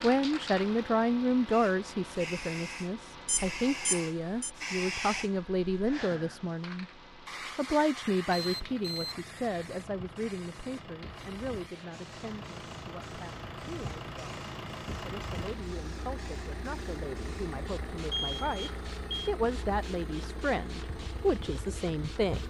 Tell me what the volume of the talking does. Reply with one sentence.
The loudness of the talking goes down, then up.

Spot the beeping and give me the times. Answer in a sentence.
The beeping can be heard from 3.2 to 4.5 s, from 8.3 to 9.2 s and from 18.1 to 19.3 s.